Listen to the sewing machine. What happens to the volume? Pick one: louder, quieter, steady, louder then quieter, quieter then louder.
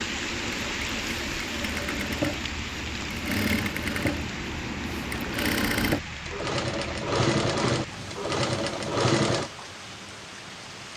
louder.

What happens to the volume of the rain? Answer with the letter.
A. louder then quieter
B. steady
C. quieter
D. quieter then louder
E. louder
C.